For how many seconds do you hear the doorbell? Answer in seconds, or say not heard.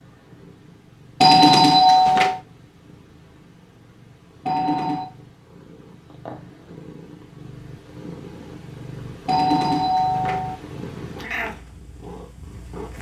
3 s.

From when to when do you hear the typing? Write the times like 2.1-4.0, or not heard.
not heard.